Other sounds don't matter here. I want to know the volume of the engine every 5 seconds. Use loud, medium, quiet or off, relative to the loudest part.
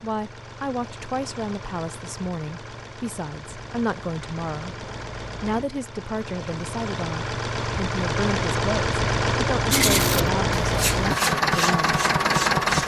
quiet, medium, loud.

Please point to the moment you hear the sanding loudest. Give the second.
10 s.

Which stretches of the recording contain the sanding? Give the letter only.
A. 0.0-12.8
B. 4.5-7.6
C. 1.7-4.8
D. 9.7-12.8
D.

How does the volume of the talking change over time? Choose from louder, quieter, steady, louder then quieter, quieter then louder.
steady.